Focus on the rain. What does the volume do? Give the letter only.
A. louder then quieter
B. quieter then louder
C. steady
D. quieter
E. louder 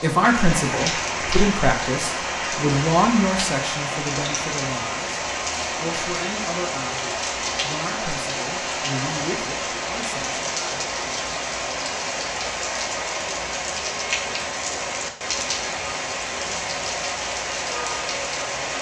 C.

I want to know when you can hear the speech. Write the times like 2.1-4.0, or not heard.
0.0-10.4.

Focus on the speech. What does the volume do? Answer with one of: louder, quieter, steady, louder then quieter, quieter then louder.
quieter.